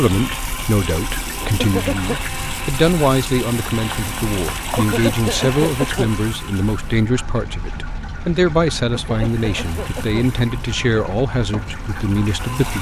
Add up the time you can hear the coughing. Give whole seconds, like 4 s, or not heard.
3 s.